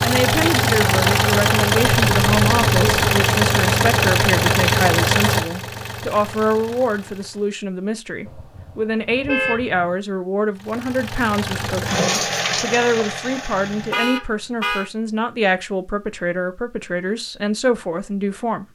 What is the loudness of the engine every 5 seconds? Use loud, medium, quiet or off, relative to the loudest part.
loud, medium, medium, off.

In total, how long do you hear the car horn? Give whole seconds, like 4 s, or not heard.
4 s.